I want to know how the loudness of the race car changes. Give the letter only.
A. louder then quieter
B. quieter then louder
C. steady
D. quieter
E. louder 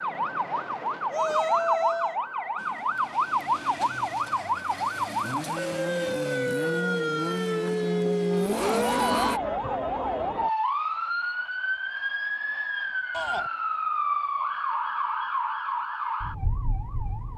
E.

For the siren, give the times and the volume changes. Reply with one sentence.
The siren can be heard from 0.0 to 17.3 s, at a steady volume.